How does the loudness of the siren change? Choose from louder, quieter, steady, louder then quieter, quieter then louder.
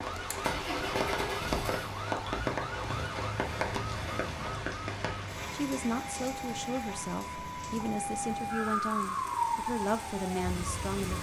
louder.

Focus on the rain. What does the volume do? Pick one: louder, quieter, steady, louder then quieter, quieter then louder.
quieter.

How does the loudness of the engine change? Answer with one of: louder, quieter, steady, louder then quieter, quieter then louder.
quieter.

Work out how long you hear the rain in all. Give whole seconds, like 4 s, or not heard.
11 s.